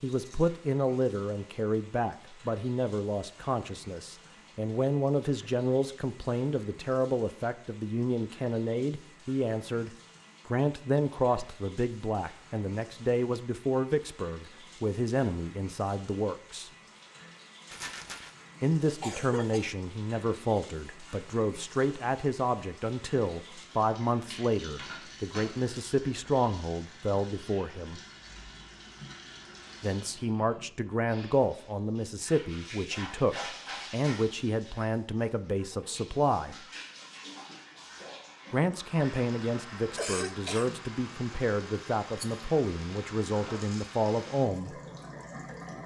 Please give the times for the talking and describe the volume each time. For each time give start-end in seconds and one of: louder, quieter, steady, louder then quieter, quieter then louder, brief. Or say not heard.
0.0-16.7 steady
18.6-28.0 steady
29.8-36.6 steady
38.5-44.8 steady.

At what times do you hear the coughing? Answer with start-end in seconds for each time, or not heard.
18.9-19.8, 40.0-40.8.